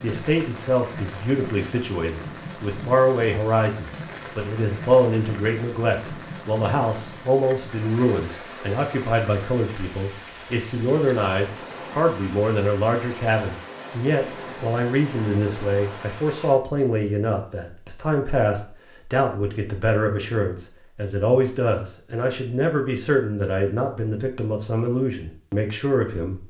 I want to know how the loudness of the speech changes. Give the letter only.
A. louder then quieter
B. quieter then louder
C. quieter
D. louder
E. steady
E.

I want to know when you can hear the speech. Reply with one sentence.
The speech can be heard from 0.0 to 26.4 s.